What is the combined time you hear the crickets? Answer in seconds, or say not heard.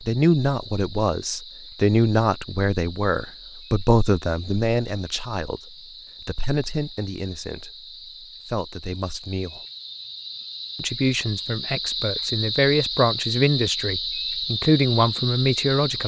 16 s.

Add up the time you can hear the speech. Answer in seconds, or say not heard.
15 s.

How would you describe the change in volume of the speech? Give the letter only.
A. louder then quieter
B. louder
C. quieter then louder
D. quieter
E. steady
C.